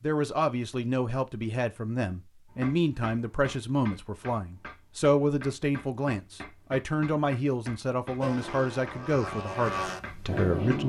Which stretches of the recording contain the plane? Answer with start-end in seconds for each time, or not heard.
8.2-10.8.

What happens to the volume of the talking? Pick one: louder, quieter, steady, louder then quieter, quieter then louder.
steady.